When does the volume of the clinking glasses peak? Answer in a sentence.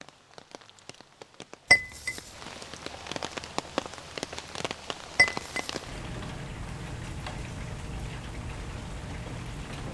The loudest moment of the clinking glasses is at 2 seconds.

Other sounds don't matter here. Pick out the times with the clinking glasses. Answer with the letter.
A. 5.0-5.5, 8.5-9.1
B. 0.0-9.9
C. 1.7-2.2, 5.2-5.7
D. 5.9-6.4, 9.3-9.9
C.